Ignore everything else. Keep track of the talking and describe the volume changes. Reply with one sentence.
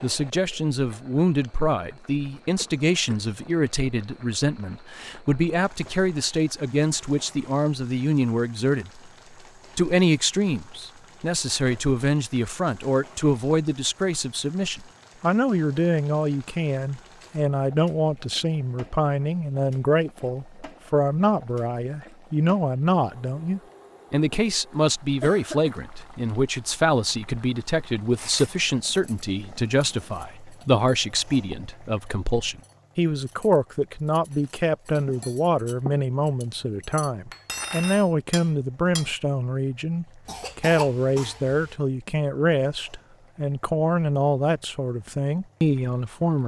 The volume of the talking stays about the same.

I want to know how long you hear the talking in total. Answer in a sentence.
The talking can be heard for 46 seconds in total.